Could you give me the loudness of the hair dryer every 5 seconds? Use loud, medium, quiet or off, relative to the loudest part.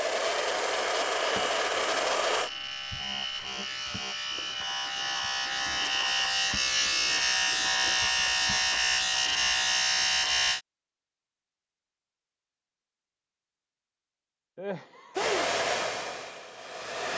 loud, off, off, loud.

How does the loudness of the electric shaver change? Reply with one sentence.
The volume of the electric shaver goes up.